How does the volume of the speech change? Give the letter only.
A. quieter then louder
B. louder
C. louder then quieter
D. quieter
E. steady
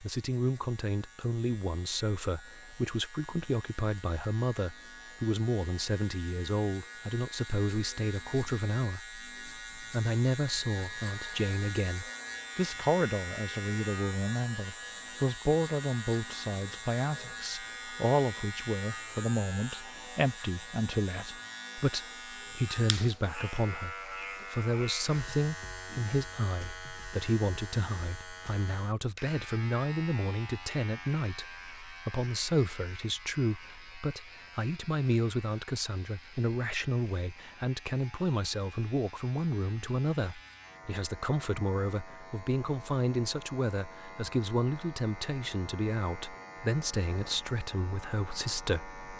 E.